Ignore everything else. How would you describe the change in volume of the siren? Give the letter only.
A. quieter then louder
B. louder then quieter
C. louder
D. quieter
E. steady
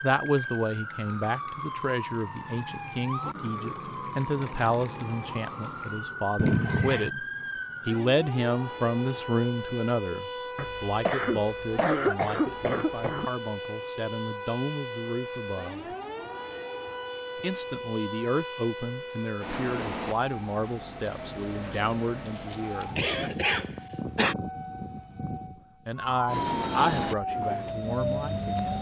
E.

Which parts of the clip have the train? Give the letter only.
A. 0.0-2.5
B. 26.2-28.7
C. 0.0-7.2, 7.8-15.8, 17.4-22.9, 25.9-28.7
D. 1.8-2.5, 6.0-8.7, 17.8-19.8
B.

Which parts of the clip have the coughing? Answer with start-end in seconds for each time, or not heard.
6.3-7.1, 10.6-13.2, 22.4-24.4.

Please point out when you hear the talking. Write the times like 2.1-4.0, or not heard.
0.0-7.2, 7.8-15.8, 17.4-22.9, 25.9-28.7.